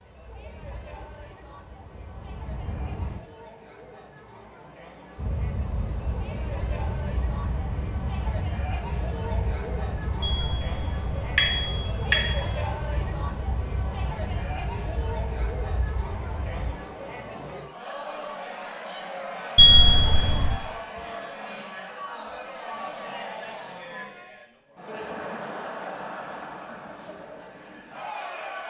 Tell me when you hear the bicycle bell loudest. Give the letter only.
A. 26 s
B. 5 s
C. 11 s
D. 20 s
D.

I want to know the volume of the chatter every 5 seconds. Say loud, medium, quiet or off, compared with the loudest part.
medium, loud, loud, loud, loud, loud.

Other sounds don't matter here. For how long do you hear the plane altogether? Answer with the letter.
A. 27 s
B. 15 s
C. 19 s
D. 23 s
B.